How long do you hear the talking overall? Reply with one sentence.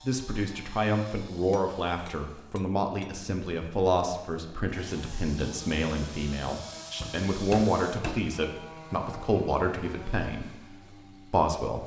The talking can be heard for 12 seconds in total.